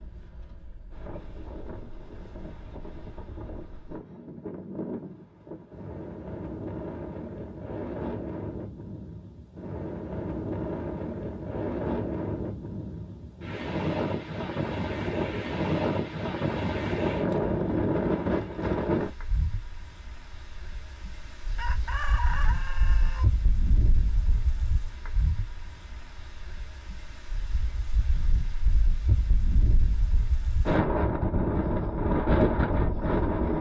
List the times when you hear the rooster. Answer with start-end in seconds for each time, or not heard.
21.4-23.2.